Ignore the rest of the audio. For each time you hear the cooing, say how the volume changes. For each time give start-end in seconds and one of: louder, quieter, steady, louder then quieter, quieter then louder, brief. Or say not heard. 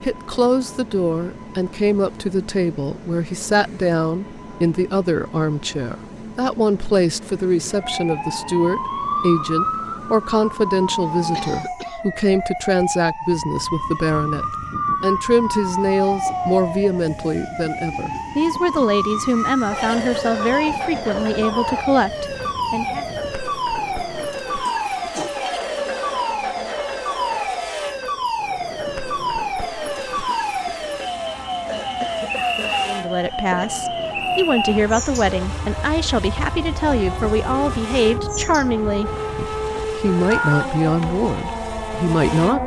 not heard.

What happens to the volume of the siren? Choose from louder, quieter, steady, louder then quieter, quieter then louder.
steady.